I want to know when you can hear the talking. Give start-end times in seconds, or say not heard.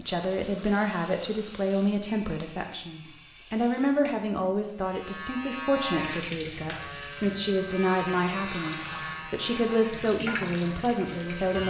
0.0-11.6.